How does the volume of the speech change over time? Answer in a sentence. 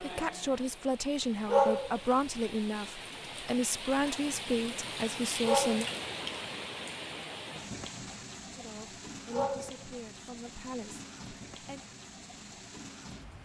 The loudness of the speech goes down.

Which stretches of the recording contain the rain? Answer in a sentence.
You can hear the rain from 0.0 to 13.4 s.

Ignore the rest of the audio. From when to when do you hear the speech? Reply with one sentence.
The speech can be heard from 0.0 to 5.9 s and from 8.6 to 11.8 s.